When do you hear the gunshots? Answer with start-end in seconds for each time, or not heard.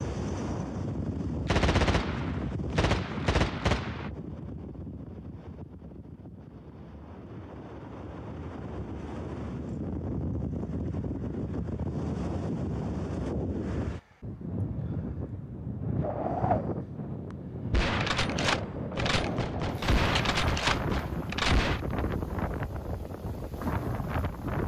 1.4-4.1, 17.7-21.8.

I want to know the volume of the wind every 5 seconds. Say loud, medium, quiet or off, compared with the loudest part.
loud, medium, loud, loud, loud.